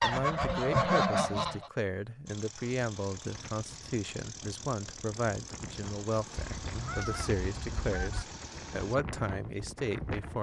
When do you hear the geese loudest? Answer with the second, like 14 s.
1 s.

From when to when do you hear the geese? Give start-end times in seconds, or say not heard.
0.0-1.7, 6.3-8.2.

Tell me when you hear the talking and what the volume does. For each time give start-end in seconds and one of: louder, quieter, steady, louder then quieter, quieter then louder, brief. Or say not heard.
0.0-10.3 steady.